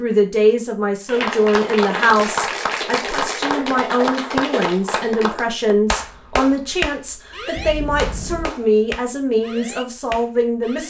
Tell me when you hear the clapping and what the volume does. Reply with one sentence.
You can hear the clapping from 1.1 to 10.8 s, getting quieter.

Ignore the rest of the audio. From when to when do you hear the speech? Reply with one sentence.
You can hear the speech from 0.0 to 10.8 s.